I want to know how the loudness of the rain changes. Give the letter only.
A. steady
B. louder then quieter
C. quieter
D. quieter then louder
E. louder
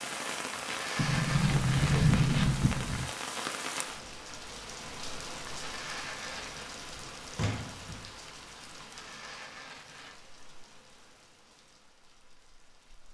C.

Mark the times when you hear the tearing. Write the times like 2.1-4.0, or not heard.
0.5-2.5, 5.5-6.8, 8.8-10.2.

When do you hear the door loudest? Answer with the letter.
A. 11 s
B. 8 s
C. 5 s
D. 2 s
D.